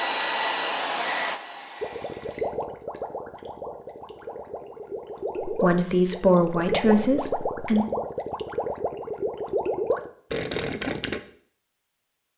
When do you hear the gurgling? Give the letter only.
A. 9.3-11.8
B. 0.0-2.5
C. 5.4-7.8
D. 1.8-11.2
D.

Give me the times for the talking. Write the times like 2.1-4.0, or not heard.
5.4-7.8.